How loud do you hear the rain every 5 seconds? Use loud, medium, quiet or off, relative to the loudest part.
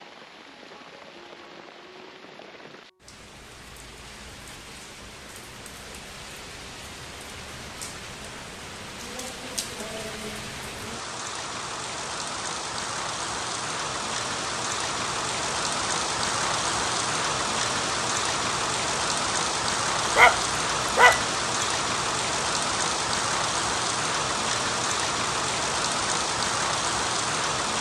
quiet, quiet, medium, loud, loud, loud.